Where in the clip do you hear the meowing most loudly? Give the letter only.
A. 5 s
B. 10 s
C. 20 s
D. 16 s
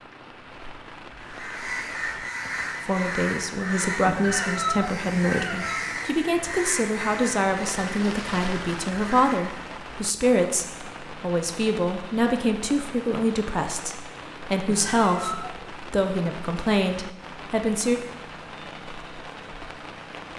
A.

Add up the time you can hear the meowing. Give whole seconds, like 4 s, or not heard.
3 s.